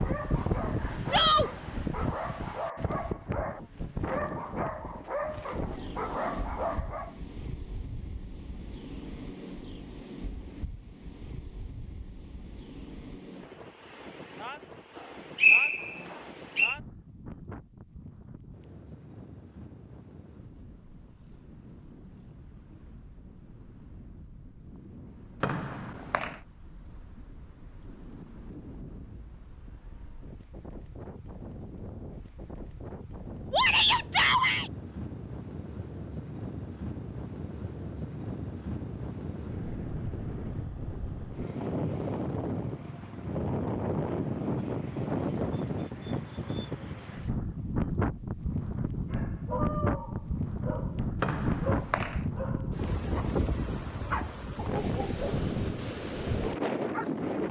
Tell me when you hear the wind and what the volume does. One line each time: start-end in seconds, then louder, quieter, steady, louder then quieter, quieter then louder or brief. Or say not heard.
0.0-57.4 quieter then louder.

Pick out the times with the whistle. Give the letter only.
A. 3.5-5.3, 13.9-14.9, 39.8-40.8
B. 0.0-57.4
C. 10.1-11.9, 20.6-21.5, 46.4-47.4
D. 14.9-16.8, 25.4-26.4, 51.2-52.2
D.